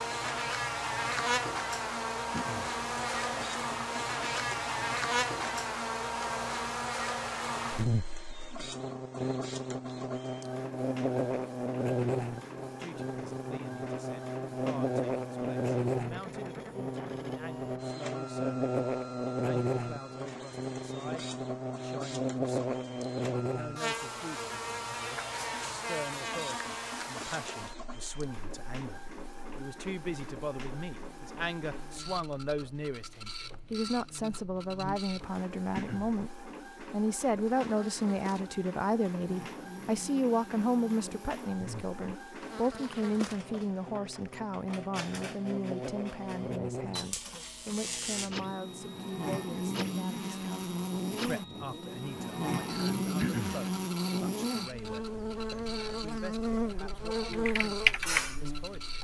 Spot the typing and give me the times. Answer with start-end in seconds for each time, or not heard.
57.3-58.4.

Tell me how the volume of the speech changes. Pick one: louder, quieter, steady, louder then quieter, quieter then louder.
louder then quieter.